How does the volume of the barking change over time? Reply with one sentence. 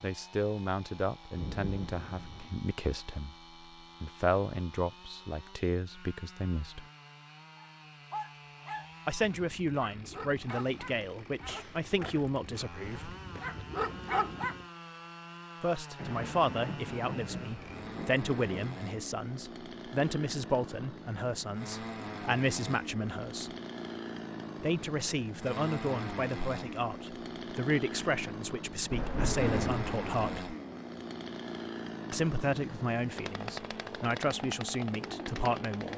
The volume of the barking goes down, then up.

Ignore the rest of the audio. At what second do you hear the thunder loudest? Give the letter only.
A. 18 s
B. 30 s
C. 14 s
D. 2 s
B.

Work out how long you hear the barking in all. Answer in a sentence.
You can hear the barking for 7 seconds altogether.